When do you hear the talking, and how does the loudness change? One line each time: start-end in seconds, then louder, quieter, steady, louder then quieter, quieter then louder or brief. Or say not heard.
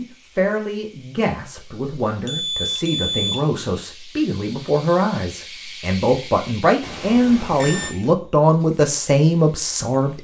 0.0-10.1 louder.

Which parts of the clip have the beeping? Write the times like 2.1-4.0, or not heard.
2.2-3.5, 6.8-8.0.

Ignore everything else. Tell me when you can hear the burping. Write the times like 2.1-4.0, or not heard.
not heard.